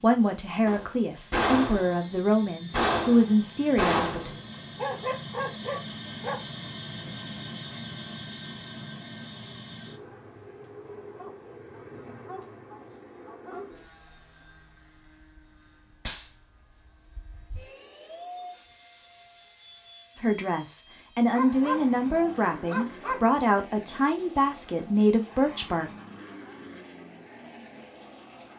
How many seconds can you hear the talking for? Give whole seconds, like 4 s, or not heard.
10 s.